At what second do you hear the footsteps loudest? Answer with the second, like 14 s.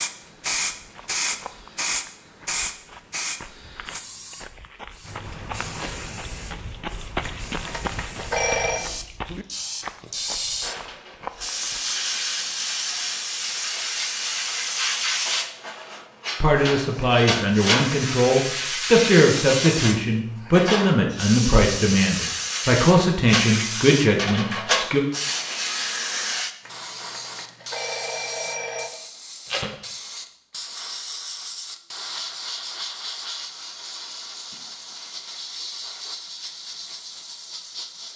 7 s.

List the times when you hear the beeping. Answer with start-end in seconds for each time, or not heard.
7.2-8.9, 26.6-28.9.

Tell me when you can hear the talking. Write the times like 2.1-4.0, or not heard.
16.4-25.0.